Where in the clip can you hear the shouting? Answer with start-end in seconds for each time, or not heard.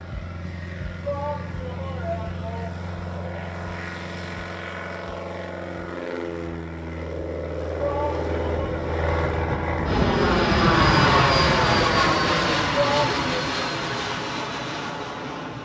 1.0-3.4, 7.8-8.8, 12.7-13.3.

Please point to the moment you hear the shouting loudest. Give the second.
13 s.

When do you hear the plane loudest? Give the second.
11 s.